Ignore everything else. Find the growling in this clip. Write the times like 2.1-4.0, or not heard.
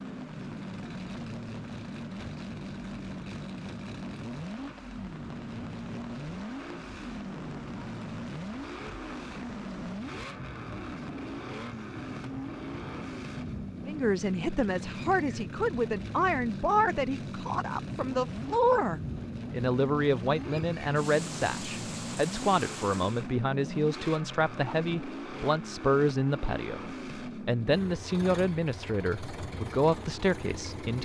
not heard.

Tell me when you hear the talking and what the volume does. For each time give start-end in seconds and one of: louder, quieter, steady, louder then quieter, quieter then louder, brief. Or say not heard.
13.8-30.9 steady.